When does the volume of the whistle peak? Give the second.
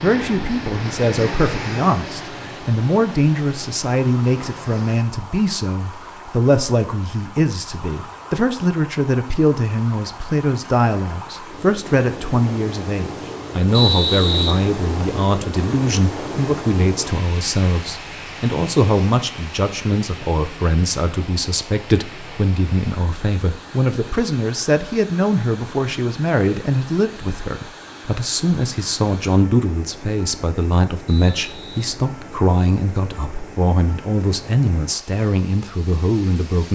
14 s.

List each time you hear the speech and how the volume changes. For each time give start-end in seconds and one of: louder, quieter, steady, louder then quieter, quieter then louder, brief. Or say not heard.
0.0-36.7 steady.